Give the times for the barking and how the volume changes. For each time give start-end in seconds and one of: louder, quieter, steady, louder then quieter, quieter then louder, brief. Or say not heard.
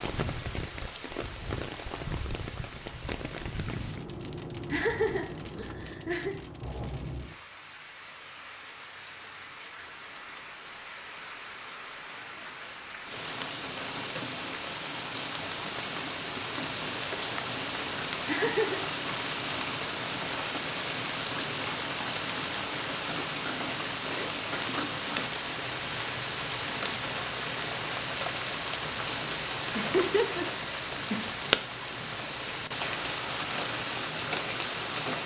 not heard.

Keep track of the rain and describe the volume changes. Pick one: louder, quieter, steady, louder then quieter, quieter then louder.
louder.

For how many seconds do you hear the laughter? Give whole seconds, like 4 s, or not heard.
4 s.